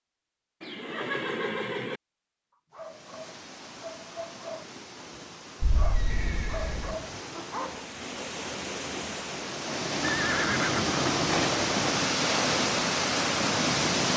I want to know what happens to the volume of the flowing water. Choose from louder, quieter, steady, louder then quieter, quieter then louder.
louder.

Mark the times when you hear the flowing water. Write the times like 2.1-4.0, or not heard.
2.7-14.1.